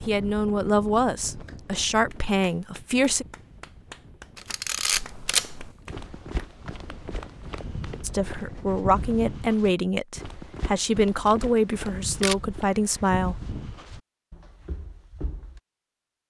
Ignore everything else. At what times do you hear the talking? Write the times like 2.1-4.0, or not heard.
0.1-3.2, 8.0-13.4.